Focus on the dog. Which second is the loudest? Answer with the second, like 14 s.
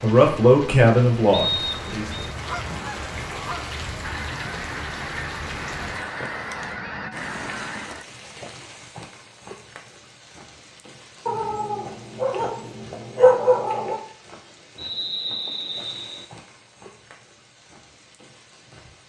13 s.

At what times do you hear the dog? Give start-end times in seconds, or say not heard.
11.2-14.0.